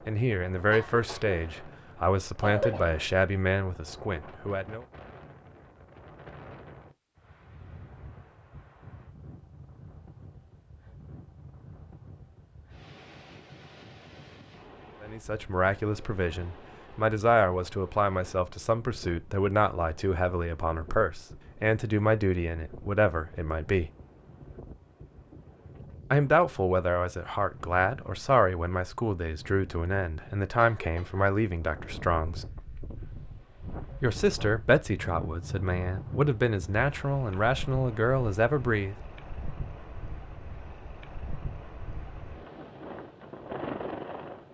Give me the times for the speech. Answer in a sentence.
The speech can be heard from 0.1 to 4.8 s, from 15.0 to 23.9 s, from 26.1 to 32.5 s and from 34.0 to 39.0 s.